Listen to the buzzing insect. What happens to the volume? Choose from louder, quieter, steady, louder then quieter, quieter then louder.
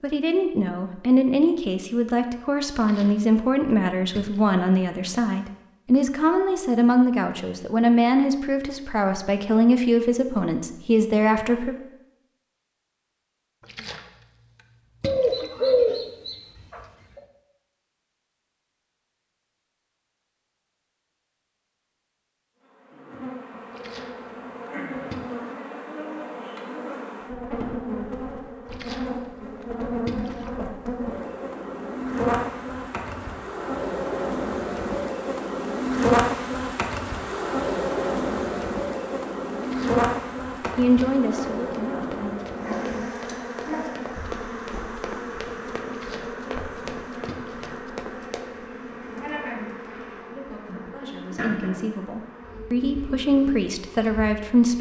louder then quieter.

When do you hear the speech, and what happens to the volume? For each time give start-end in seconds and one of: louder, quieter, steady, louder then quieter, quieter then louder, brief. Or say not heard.
0.0-11.8 steady
40.8-42.4 brief
50.2-54.7 louder.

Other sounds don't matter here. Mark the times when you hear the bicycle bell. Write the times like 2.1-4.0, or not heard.
not heard.